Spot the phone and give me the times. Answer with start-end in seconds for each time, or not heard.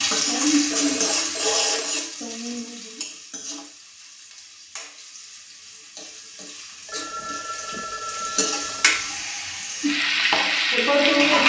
0.7-2.1, 6.8-9.2.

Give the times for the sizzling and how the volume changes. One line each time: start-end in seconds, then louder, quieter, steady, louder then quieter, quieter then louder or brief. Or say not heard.
0.0-11.4 quieter then louder.